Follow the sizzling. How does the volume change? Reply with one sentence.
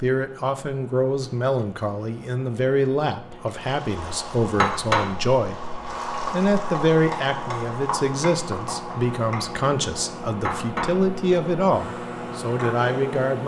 The volume of the sizzling goes down.